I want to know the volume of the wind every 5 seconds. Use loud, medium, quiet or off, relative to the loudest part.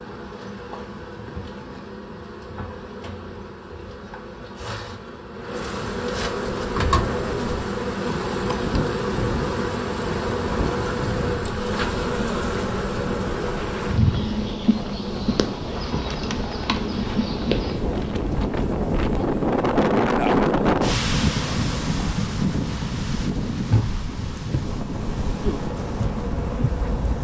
off, medium, medium, loud, loud, medium.